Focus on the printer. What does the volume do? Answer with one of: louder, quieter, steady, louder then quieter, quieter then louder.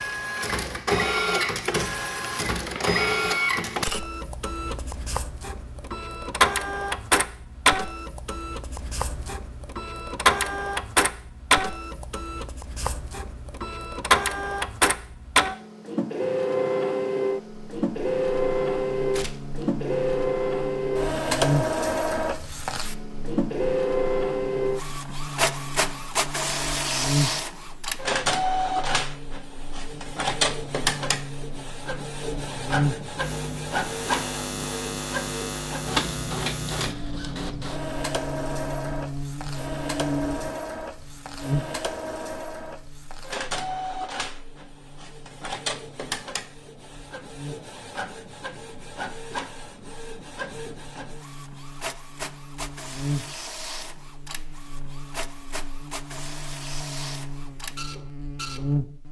quieter.